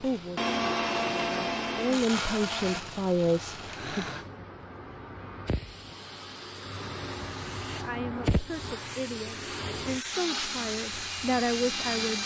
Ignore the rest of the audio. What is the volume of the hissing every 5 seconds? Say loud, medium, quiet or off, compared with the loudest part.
medium, loud, loud.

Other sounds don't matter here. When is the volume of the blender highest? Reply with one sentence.
The volume of the blender peaks at 1 second.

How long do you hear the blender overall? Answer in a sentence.
You can hear the blender for 6 seconds altogether.